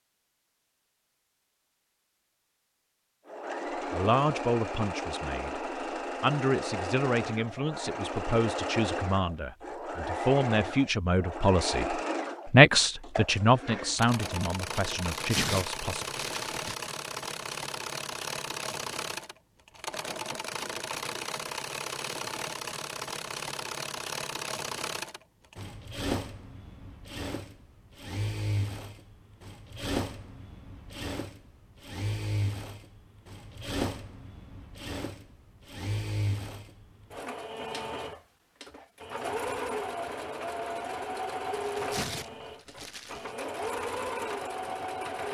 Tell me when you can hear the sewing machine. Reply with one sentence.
You can hear the sewing machine from 3.2 to 45.2 s.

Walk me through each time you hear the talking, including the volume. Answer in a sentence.
The talking can be heard briefly from 3.9 to 5.6 s; and from 6.2 to 16.1 s, getting louder then quieter.